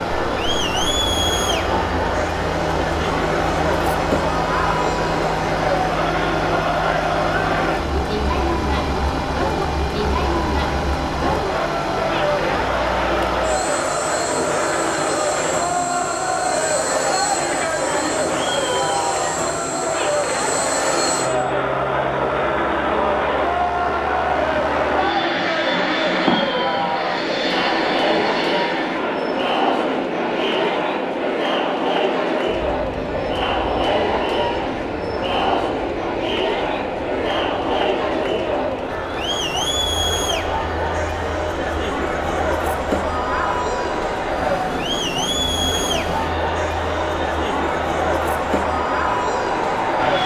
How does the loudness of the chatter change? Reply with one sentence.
The loudness of the chatter stays about the same.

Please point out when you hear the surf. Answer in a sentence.
The surf can't be heard in this clip.